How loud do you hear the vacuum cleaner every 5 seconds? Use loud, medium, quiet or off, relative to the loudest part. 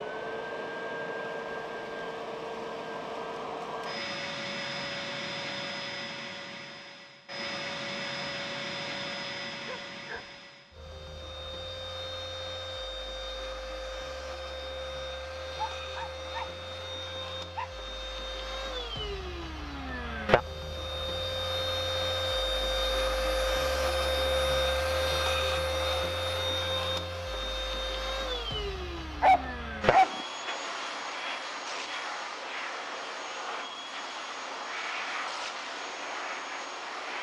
medium, medium, medium, medium, loud, loud, medium, medium.